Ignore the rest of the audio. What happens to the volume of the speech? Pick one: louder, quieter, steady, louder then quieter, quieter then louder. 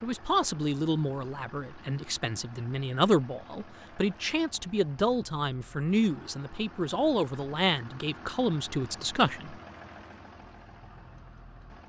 steady.